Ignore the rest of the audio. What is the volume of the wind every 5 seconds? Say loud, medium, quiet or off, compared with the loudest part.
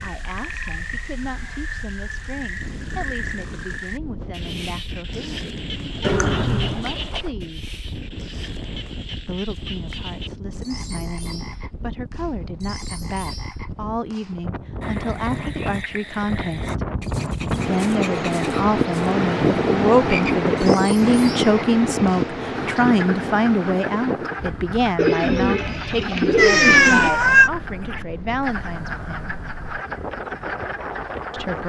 quiet, quiet, quiet, loud, loud, quiet, medium.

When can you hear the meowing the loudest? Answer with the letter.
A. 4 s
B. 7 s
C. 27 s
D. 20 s
C.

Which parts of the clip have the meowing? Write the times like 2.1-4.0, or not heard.
6.0-6.8, 26.4-27.5.